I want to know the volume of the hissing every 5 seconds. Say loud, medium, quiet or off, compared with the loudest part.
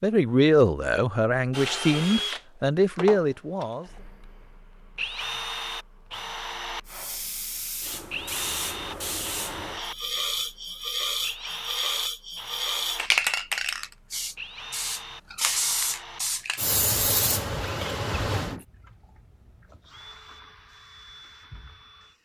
off, medium, loud, loud, off.